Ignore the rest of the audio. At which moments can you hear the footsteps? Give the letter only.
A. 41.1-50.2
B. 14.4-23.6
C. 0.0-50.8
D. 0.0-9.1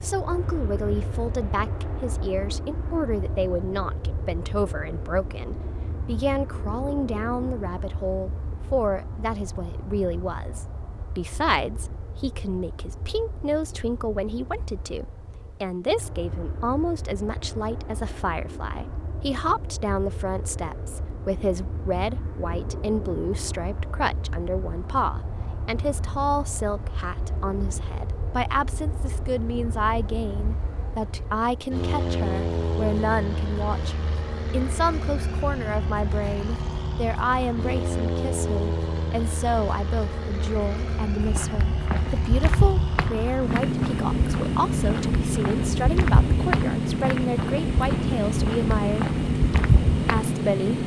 A.